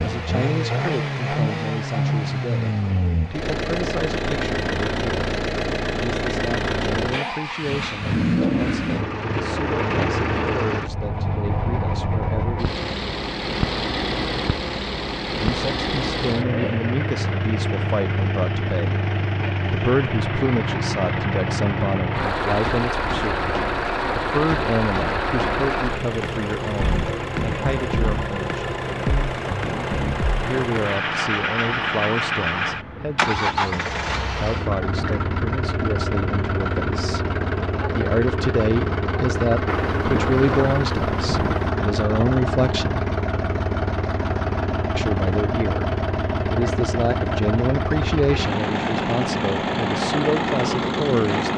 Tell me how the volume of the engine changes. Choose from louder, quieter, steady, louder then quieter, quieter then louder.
steady.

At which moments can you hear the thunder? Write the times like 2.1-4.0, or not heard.
39.6-41.7.